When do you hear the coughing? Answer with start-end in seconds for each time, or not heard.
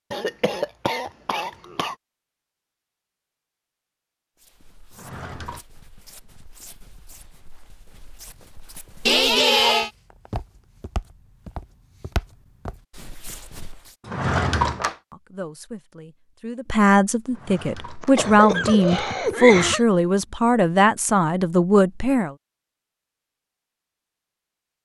0.1-1.9, 9.1-9.9, 18.0-19.9.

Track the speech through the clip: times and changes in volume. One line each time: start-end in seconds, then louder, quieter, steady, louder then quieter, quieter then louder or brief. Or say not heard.
15.1-22.4 louder.